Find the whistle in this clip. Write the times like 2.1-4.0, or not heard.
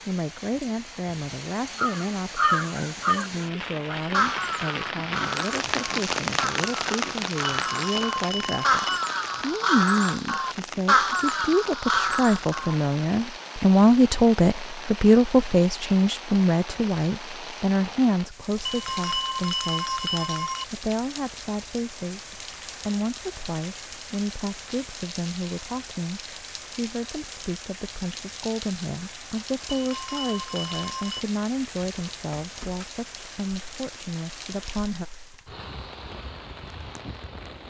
not heard.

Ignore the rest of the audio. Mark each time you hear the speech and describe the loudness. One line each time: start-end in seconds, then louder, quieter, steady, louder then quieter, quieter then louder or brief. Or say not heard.
0.1-35.0 louder then quieter.